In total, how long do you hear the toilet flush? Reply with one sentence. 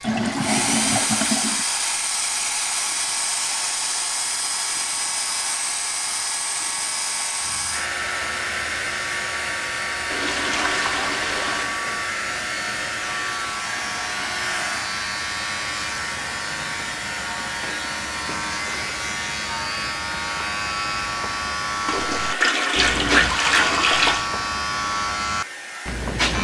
You can hear the toilet flush for 6 seconds altogether.